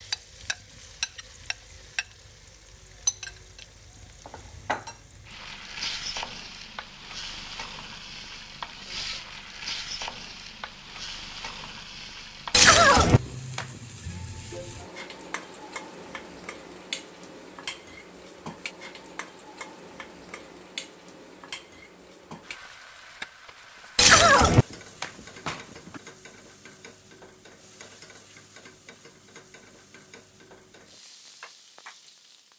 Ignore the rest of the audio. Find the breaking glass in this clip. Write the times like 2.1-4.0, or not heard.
12.5-13.7, 23.9-26.0.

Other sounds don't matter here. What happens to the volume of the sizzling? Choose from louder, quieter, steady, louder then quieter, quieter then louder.
quieter.